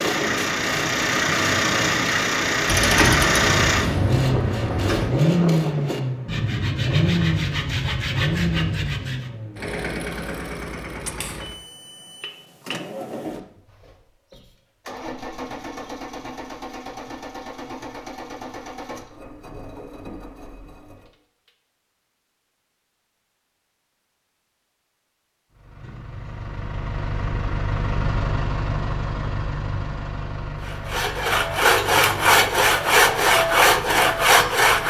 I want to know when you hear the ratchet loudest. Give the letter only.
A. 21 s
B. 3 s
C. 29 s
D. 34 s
B.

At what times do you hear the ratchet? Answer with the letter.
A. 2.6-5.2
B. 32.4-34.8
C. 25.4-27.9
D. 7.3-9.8
A.